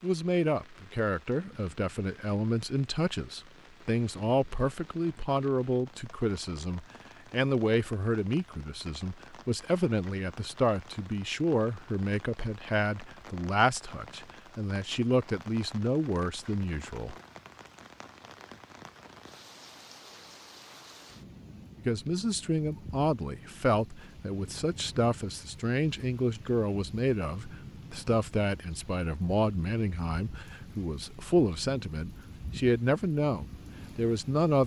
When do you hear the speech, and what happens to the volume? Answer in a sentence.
The speech can be heard from 0.0 to 17.1 s, at a steady volume; and from 21.8 to 34.6 s, at a steady volume.